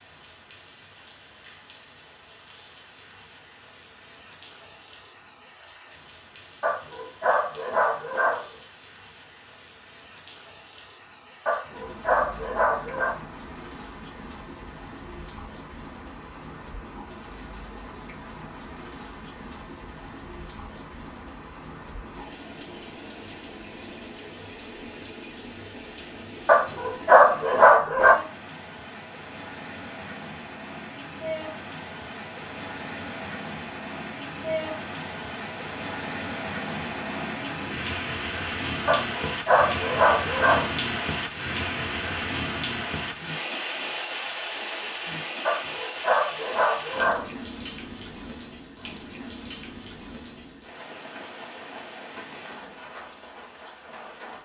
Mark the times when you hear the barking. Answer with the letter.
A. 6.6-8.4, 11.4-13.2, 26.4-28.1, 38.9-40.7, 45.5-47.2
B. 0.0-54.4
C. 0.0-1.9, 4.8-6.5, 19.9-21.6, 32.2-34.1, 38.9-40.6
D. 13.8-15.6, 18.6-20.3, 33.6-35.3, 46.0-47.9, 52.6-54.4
A.